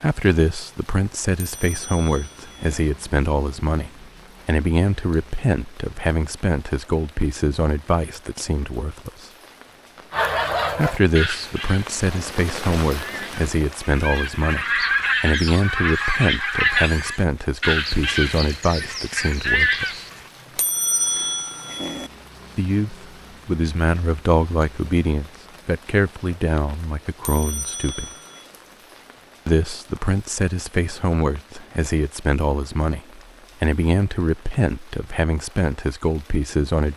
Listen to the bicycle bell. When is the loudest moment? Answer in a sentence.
The volume of the bicycle bell peaks at 21 seconds.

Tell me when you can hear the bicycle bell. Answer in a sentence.
The bicycle bell can be heard from 1.6 to 2.8 s, from 20.6 to 22.1 s and from 27.2 to 28.5 s.